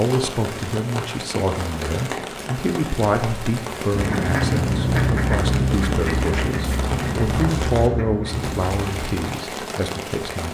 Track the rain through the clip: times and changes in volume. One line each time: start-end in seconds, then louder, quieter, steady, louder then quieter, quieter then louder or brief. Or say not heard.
0.0-10.4 steady.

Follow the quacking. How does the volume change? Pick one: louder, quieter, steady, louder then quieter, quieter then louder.
quieter.